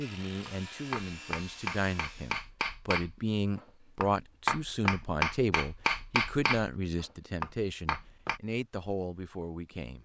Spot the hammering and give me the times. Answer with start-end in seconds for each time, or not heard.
0.5-8.4.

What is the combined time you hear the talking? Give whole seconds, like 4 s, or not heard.
10 s.